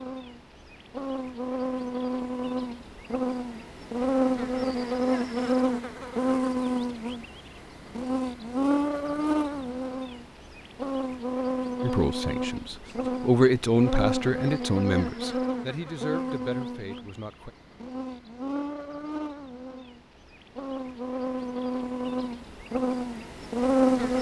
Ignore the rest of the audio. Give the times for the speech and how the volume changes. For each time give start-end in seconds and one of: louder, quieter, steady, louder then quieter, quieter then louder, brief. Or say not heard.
11.8-17.5 louder then quieter.